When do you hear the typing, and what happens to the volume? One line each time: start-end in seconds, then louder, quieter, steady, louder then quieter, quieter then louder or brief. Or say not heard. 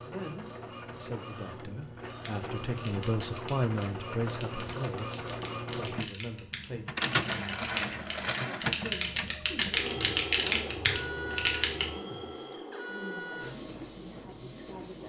2.1-11.9 louder.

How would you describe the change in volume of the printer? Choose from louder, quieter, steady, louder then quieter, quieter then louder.
louder then quieter.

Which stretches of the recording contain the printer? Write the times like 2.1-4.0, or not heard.
0.0-15.0.